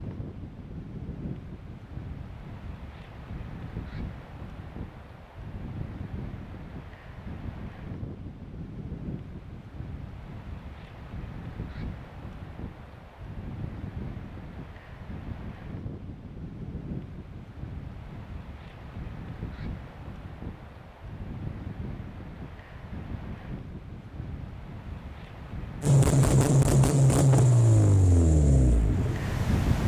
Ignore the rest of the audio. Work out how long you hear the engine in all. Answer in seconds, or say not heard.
4 s.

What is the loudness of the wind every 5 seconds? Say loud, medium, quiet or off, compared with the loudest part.
medium, medium, medium, medium, medium, loud.